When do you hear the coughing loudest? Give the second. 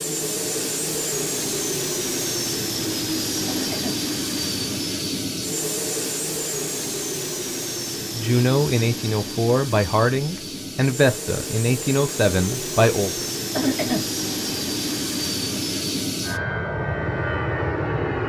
14 s.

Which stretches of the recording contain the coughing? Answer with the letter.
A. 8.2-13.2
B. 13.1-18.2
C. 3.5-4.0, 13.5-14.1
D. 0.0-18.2
C.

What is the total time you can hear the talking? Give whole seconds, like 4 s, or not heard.
5 s.